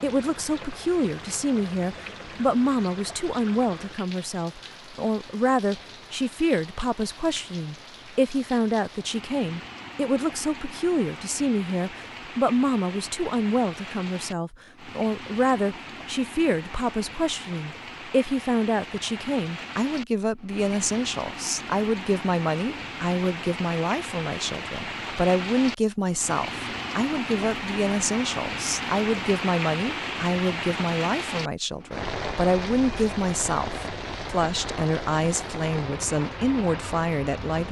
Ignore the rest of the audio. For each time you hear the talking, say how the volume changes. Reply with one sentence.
You can hear the talking from 0.0 to 37.6 s, at a steady volume.